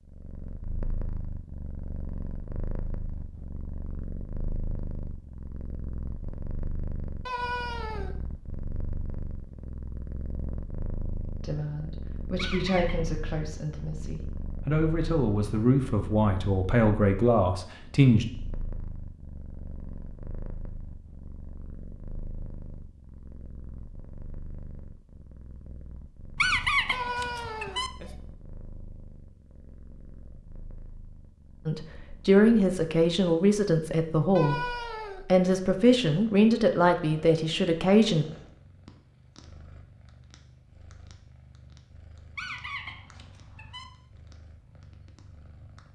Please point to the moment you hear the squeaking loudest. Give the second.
27 s.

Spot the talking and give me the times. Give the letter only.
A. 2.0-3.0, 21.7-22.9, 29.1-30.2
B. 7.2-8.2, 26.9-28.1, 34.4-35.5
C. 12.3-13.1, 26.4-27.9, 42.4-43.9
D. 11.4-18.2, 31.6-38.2
D.